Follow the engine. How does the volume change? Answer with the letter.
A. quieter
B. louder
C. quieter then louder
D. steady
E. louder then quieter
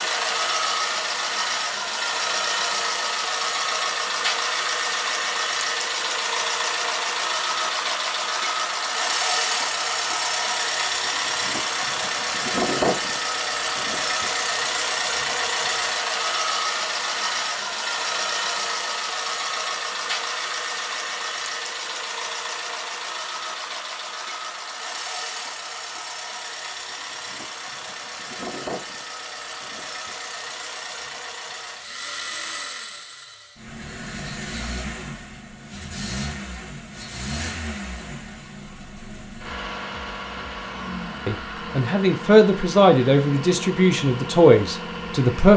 A.